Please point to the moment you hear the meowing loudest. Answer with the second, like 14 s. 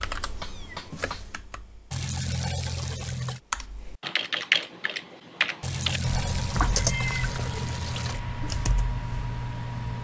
7 s.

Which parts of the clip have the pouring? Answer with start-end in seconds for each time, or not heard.
1.9-3.4, 5.6-8.2.